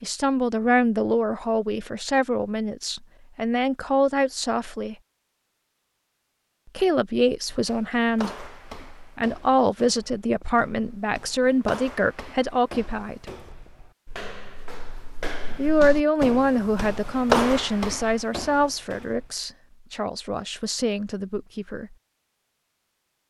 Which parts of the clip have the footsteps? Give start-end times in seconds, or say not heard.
7.5-19.4.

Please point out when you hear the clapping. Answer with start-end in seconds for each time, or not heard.
not heard.